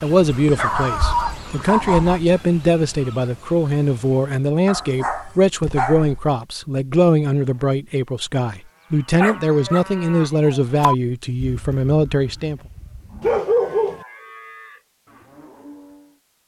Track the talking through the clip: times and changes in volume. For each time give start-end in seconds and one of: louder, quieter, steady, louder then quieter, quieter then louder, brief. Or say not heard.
0.0-12.6 steady.